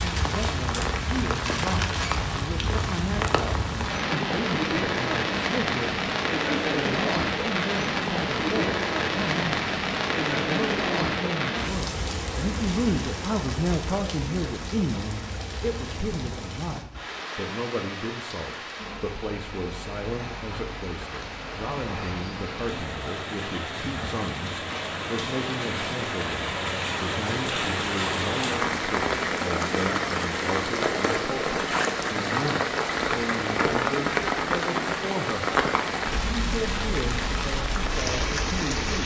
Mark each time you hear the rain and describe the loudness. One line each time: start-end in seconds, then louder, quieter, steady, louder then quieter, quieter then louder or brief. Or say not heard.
0.0-39.0 quieter then louder.